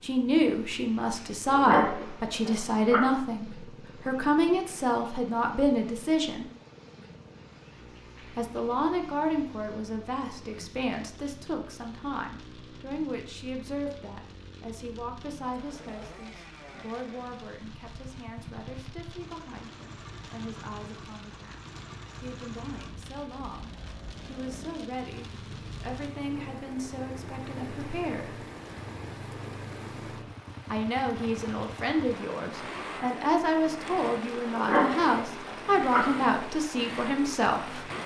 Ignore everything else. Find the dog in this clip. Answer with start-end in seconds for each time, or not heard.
1.4-3.1, 34.5-36.1.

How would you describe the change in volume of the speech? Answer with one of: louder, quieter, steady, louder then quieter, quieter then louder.
quieter then louder.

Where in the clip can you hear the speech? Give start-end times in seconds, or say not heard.
0.0-6.5, 8.3-28.4, 30.7-37.9.